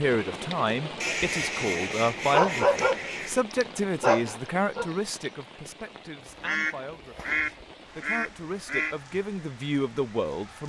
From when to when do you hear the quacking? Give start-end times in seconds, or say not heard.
1.0-3.4, 6.2-8.9.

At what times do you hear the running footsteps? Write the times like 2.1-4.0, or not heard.
not heard.